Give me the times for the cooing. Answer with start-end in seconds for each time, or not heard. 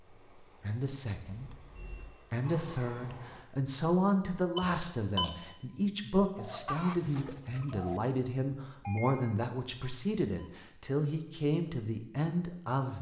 6.3-8.0.